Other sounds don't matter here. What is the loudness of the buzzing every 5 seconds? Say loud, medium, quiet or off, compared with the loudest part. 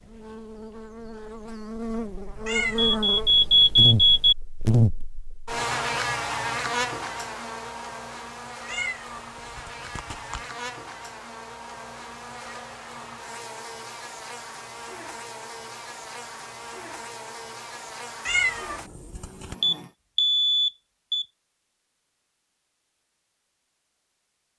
loud, loud, medium, medium, off.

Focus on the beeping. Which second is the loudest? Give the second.
4 s.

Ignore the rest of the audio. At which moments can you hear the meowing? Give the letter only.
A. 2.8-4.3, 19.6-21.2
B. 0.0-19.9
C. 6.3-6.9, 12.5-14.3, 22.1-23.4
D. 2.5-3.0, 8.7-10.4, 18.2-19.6
D.